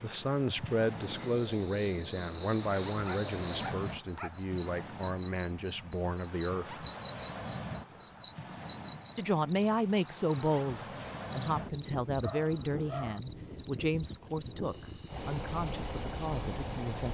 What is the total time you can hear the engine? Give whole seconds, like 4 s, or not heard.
2 s.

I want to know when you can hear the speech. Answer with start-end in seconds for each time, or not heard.
0.0-6.8, 9.2-17.0.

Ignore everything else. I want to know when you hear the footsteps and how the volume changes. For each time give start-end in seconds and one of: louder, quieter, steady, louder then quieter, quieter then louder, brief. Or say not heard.
not heard.